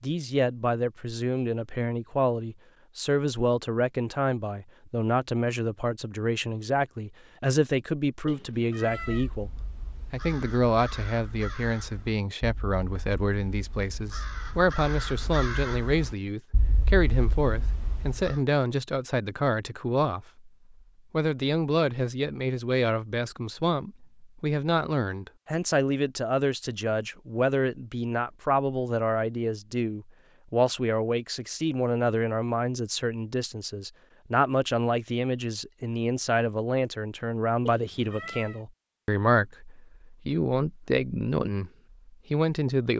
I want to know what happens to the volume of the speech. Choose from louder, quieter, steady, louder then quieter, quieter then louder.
steady.